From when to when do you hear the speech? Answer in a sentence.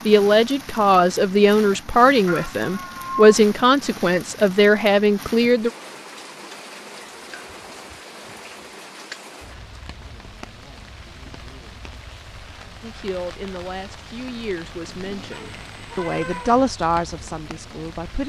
You can hear the speech from 0.1 to 5.7 s and from 12.8 to 18.2 s.